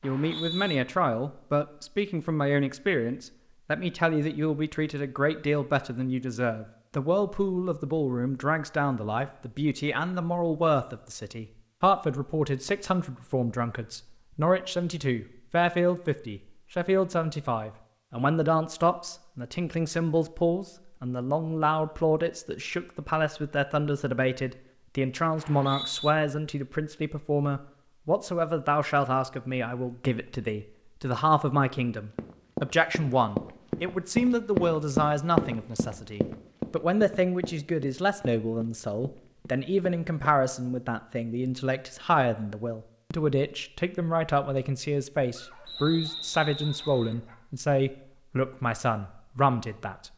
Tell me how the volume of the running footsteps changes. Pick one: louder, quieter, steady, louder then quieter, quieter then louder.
louder then quieter.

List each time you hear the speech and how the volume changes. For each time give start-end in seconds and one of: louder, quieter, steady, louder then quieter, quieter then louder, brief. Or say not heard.
0.0-50.1 steady.